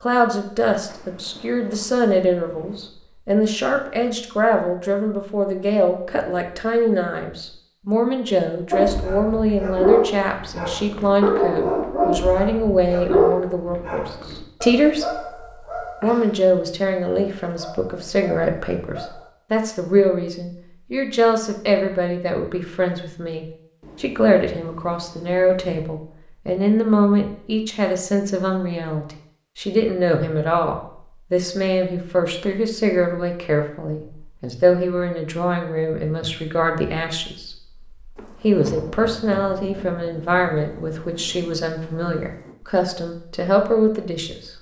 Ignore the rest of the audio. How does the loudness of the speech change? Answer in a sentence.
The loudness of the speech stays about the same.